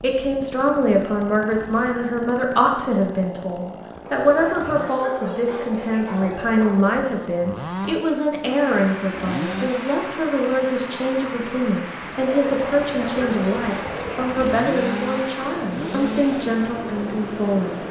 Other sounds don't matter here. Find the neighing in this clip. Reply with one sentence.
You can't hear the neighing here.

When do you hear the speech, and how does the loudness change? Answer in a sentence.
You can hear the speech from 0.0 to 17.8 s, at a steady volume.